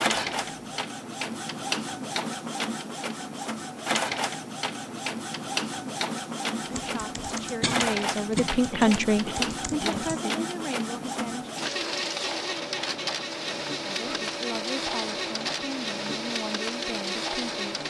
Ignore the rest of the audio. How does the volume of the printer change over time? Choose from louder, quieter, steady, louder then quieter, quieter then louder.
steady.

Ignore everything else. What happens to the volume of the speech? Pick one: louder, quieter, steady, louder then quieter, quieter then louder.
louder then quieter.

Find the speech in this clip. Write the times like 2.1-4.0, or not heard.
6.8-11.5, 13.8-17.8.